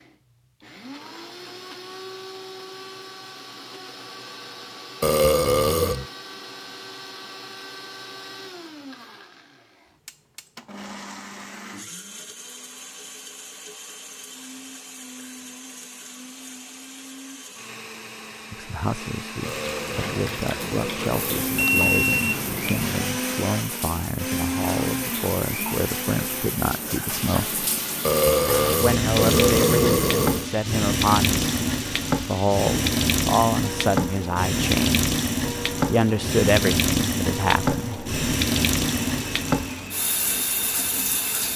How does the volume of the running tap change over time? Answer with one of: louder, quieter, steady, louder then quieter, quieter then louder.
louder.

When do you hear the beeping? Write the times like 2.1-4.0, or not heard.
21.6-23.1.